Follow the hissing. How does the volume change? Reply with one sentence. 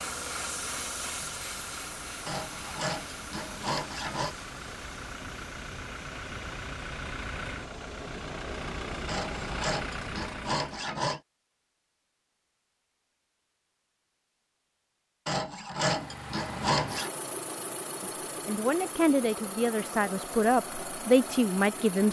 The loudness of the hissing goes down.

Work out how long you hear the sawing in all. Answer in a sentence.
The sawing can be heard for 6 seconds in total.